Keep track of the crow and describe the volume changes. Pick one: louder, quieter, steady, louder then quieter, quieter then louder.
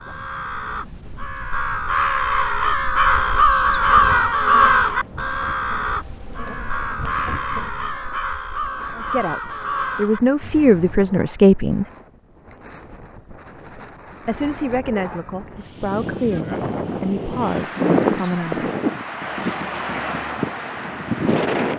louder then quieter.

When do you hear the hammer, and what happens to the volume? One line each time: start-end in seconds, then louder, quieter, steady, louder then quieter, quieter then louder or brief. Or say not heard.
not heard.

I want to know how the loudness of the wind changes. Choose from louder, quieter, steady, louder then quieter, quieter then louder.
louder.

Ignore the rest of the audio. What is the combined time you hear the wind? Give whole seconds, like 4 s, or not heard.
22 s.